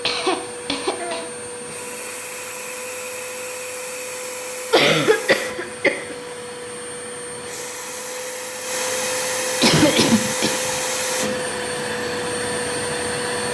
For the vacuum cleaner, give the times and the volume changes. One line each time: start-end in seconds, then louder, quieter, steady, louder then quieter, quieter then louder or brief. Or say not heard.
0.0-13.4 louder.